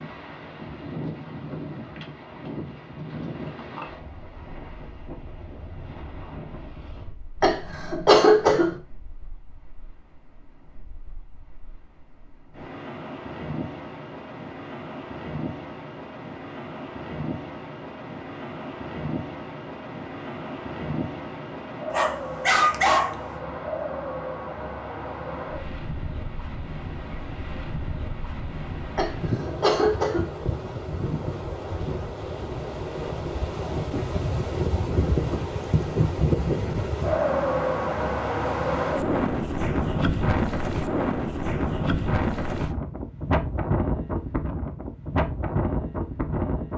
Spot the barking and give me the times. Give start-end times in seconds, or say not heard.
21.9-23.2.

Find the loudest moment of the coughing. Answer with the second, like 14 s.
8 s.